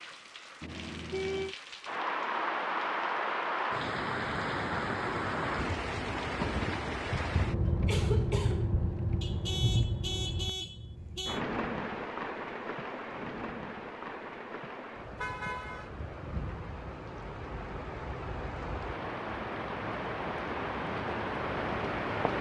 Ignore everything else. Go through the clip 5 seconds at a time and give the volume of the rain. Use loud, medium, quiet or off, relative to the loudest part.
loud, loud, medium, medium, loud.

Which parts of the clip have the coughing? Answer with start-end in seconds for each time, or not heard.
7.6-8.7.